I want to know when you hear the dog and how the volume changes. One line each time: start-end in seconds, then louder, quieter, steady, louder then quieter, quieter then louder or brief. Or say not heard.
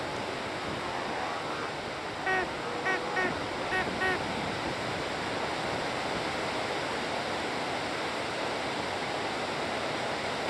not heard.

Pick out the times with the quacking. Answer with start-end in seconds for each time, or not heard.
2.2-4.2.